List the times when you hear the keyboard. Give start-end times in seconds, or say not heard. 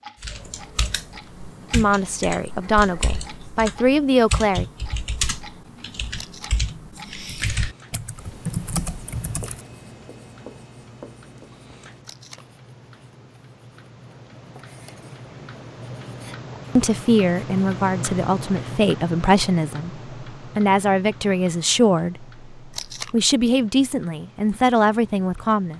0.2-9.6.